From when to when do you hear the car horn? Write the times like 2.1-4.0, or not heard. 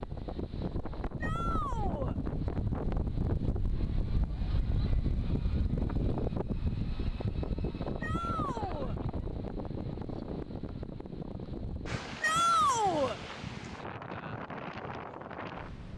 not heard.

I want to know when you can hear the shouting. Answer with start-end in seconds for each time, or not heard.
1.2-2.1, 8.0-8.9, 12.2-13.2.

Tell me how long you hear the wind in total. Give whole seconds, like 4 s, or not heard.
16 s.